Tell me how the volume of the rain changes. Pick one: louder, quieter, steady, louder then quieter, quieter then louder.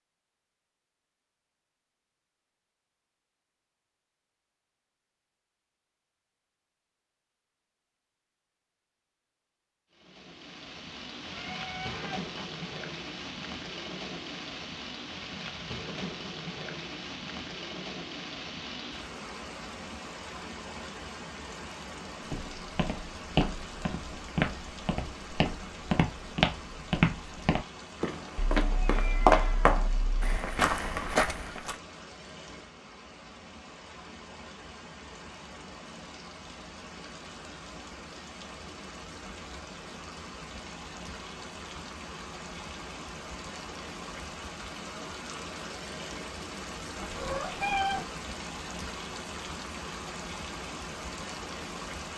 quieter then louder.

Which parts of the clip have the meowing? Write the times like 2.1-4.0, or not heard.
11.3-12.4, 28.6-30.3, 47.0-48.1.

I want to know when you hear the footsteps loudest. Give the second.
29 s.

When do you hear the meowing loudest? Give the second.
48 s.